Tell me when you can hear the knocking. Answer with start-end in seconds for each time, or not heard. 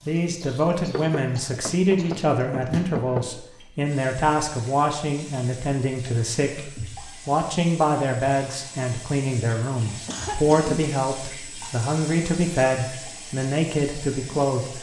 0.9-3.3.